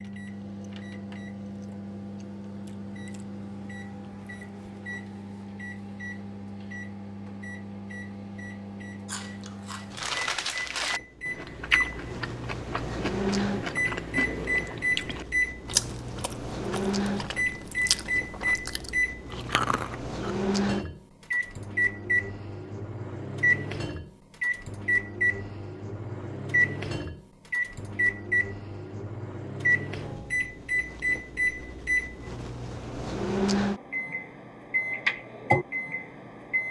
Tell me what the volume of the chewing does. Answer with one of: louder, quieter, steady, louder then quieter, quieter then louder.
steady.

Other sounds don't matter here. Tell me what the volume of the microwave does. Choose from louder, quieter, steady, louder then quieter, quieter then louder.
louder.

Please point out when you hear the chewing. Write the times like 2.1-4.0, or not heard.
9.1-20.4.